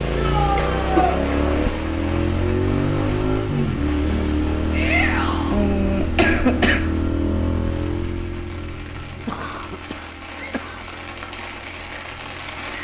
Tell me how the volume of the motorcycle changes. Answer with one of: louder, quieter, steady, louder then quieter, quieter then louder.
quieter.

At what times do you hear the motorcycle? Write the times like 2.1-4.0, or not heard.
0.0-12.7.